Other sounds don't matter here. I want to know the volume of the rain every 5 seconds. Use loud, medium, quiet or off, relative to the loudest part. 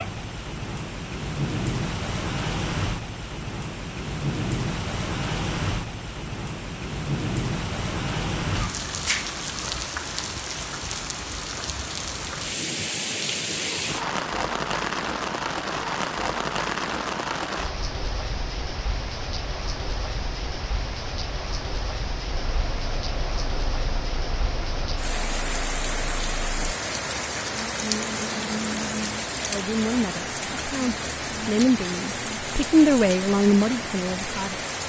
loud, loud, loud, loud, medium, loud, loud.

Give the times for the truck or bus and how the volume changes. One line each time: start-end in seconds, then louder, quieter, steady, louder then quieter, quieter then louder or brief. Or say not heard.
22.3-26.8 steady.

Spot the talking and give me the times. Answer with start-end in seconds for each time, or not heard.
29.4-34.6.